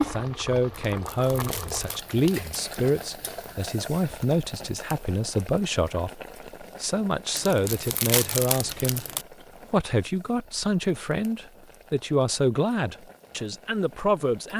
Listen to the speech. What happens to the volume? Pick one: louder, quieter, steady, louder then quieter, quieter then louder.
steady.